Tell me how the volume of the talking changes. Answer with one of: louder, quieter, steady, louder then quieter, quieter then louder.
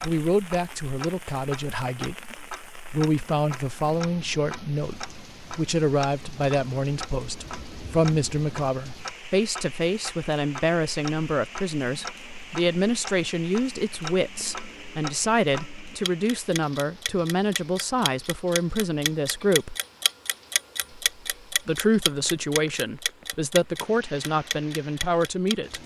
steady.